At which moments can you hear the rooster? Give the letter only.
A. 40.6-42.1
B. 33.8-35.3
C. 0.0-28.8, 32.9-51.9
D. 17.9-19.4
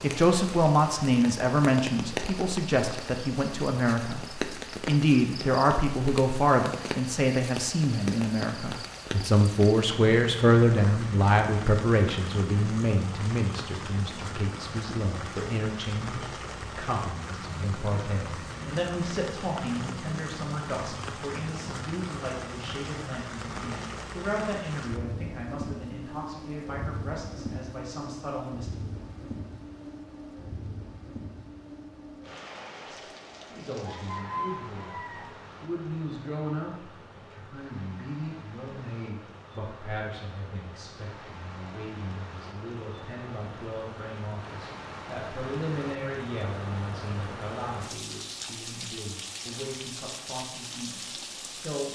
B.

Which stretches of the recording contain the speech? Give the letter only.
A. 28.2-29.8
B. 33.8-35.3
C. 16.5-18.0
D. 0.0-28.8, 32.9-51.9
D.